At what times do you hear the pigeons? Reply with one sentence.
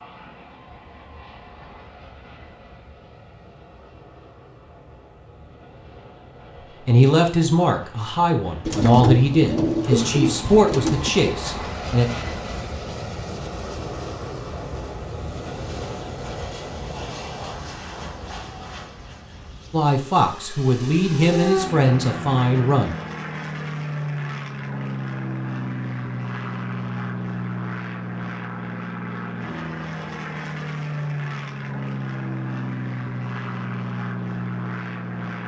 The pigeons can be heard from 8.7 to 11.1 s.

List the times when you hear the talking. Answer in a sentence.
You can hear the talking from 6.8 to 12.1 s and from 19.7 to 22.9 s.